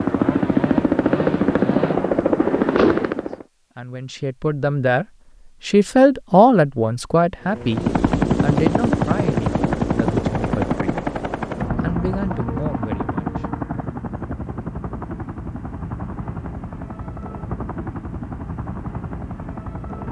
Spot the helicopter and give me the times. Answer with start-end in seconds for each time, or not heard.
0.0-3.5, 7.5-20.0.